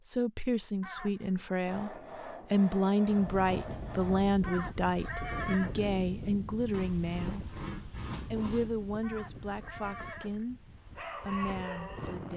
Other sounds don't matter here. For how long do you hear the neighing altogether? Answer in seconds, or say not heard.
4 s.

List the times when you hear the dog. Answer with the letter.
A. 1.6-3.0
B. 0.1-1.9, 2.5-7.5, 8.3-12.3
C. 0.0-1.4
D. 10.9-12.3
D.